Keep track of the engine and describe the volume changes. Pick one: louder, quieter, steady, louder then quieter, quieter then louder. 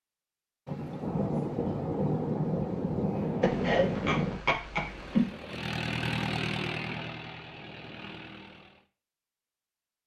louder then quieter.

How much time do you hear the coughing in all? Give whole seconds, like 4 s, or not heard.
2 s.